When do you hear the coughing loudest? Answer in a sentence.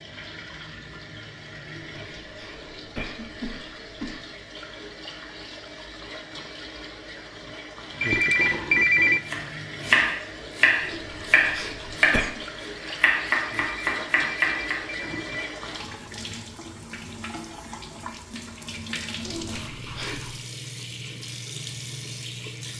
The loudest moment of the coughing is at 12 seconds.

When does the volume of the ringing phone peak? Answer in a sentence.
The loudest moment of the ringing phone is at 9 seconds.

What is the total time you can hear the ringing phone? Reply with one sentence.
You can hear the ringing phone for 3 seconds altogether.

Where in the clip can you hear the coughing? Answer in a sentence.
The coughing can be heard from 1.6 to 4.2 s, from 10.8 to 12.4 s and from 19.2 to 20.4 s.